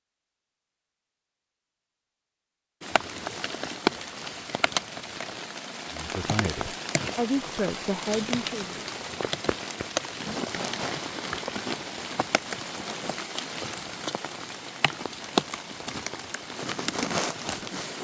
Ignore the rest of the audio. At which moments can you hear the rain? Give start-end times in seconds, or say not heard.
2.8-17.9.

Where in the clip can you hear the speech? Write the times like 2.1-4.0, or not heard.
5.9-8.8.